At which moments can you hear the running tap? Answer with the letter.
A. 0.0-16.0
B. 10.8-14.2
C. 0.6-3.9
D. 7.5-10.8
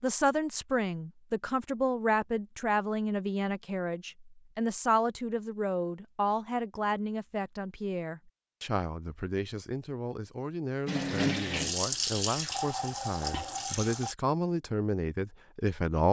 B.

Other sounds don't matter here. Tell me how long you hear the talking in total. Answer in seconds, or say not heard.
16 s.